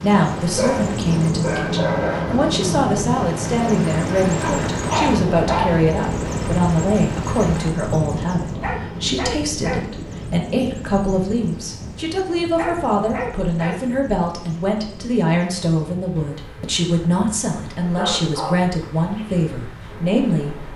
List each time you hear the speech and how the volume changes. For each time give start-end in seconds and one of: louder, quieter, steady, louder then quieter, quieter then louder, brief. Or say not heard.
0.0-20.6 steady.